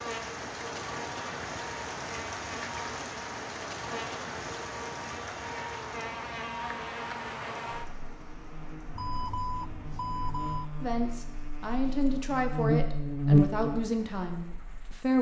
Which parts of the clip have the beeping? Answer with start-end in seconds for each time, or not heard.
8.9-10.7.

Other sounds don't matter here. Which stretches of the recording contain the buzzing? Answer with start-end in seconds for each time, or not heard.
0.0-14.9.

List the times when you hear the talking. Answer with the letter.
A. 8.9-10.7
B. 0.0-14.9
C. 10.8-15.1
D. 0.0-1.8
C.